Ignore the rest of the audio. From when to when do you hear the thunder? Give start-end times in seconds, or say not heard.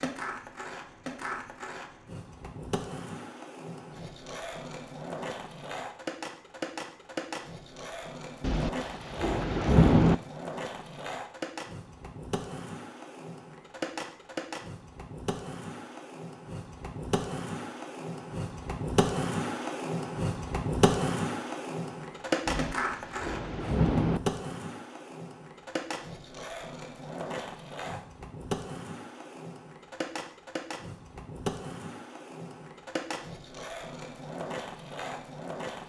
8.4-10.2, 22.4-24.2.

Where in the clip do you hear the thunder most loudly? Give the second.
10 s.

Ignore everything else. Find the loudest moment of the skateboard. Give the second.
21 s.